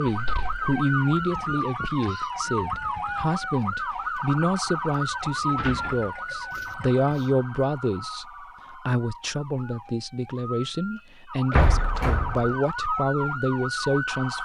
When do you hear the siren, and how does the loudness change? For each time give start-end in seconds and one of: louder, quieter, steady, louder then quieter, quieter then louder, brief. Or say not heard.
0.0-14.4 quieter then louder.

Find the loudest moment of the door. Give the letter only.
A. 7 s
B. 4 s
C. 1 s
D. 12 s
D.